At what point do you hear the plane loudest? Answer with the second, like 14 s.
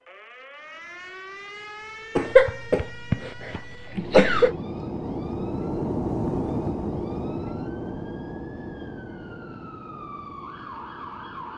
6 s.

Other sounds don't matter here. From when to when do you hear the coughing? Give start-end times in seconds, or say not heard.
2.1-4.5.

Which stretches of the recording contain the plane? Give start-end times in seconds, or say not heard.
3.9-11.5.